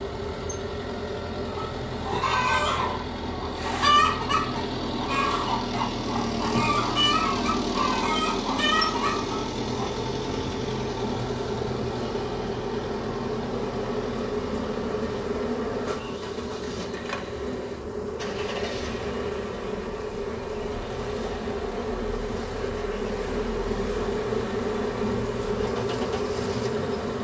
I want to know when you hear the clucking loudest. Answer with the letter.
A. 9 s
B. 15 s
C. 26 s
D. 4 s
D.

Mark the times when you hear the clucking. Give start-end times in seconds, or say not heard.
1.4-9.9.